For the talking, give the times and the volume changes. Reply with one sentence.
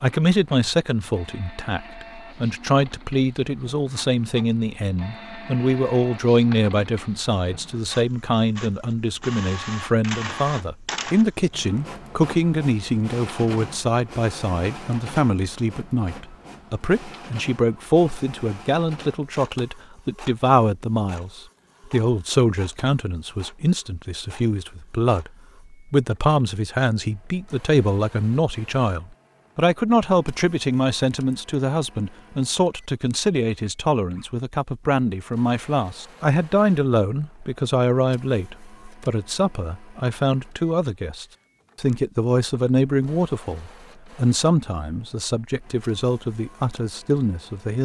You can hear the talking from 0.0 to 47.8 s, at a steady volume.